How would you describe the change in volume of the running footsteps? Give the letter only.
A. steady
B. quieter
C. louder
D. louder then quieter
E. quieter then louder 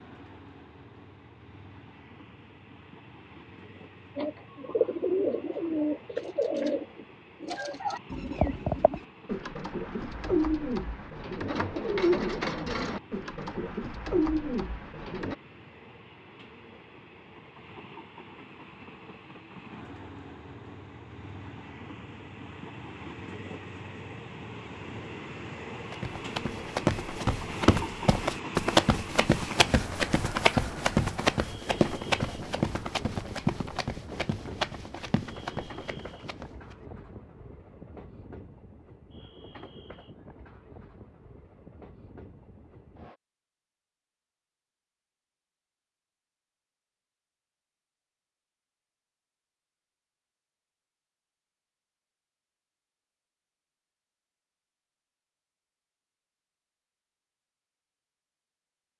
B.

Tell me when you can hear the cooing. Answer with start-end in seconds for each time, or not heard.
4.2-15.3.